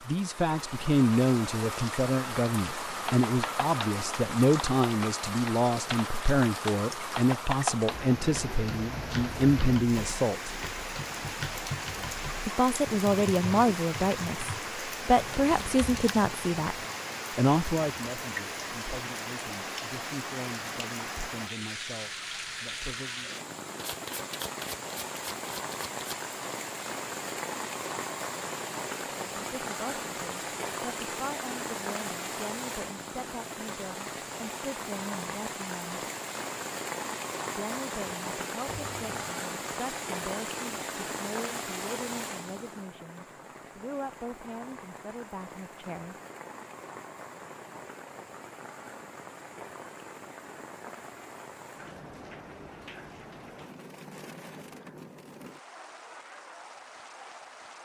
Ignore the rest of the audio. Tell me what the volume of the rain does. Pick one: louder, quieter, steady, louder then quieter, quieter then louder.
quieter.